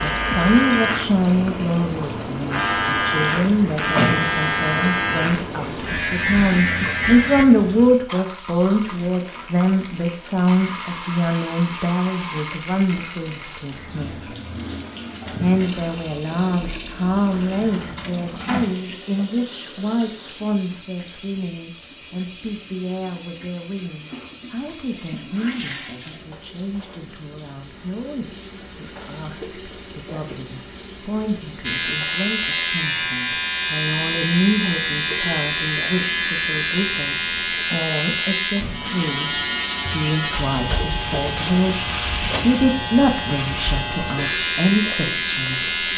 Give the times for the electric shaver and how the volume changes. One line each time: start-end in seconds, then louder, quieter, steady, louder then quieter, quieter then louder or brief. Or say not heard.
0.0-7.5 steady
31.6-45.9 steady.